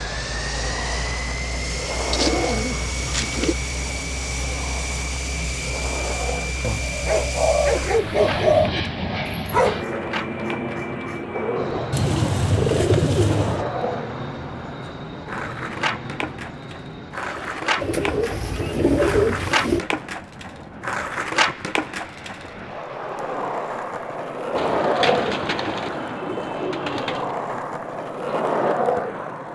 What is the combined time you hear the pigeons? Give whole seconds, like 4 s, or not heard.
10 s.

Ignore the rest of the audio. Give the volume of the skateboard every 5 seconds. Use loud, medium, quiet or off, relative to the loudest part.
medium, medium, medium, loud, loud, loud.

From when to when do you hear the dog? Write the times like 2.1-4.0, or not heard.
7.0-12.1.